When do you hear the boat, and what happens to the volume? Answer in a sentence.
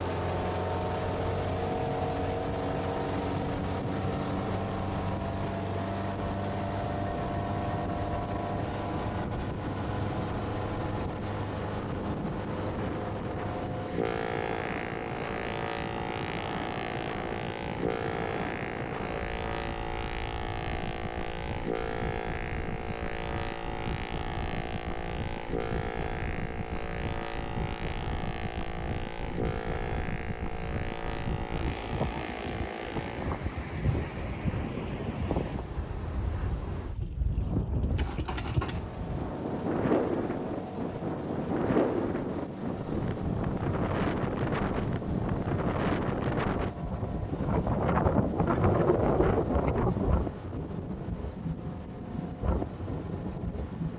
The boat can be heard from 0.0 to 53.9 s, getting quieter.